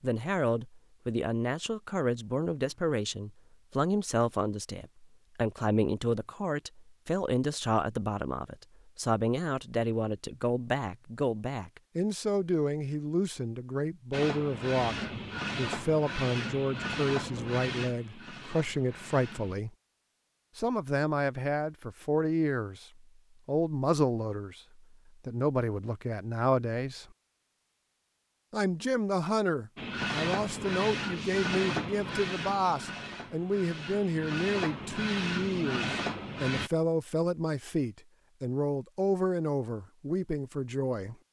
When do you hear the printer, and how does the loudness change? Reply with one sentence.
The printer can be heard from 14.1 to 19.6 s, getting quieter; and from 29.8 to 36.7 s, getting quieter then louder.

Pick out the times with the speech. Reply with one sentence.
You can hear the speech from 0.0 to 14.9 s, from 15.6 to 19.7 s, from 20.6 to 27.1 s and from 28.5 to 41.1 s.